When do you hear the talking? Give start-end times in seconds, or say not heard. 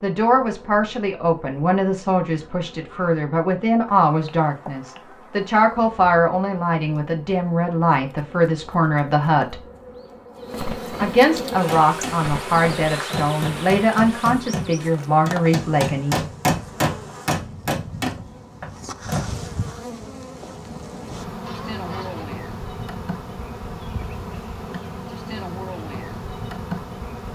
0.0-9.6, 11.0-16.2.